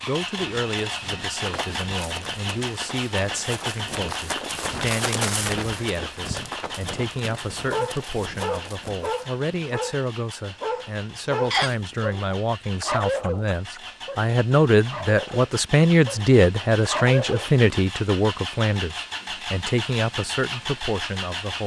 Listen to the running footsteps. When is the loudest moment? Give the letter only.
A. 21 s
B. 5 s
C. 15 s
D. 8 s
B.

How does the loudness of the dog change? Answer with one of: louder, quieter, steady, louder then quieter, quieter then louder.
quieter then louder.